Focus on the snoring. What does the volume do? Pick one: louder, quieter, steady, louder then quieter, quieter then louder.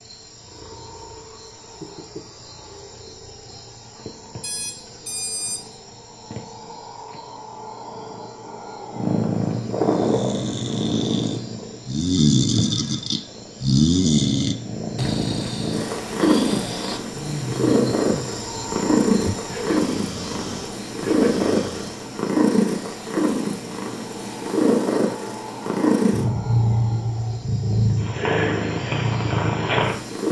louder then quieter.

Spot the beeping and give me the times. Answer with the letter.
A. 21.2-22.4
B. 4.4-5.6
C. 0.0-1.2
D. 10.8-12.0
B.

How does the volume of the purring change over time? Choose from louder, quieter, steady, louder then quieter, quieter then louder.
louder.